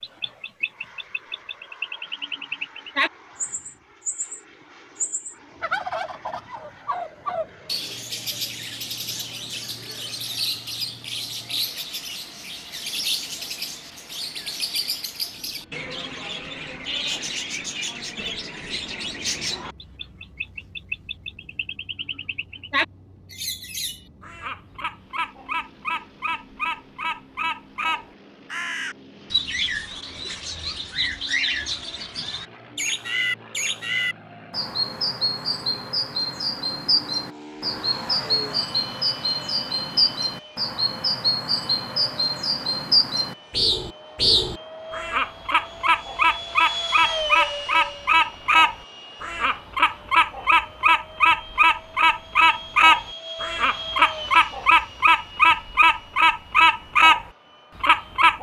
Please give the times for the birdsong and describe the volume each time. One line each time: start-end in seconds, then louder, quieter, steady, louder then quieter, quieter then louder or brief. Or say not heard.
0.0-58.3 louder.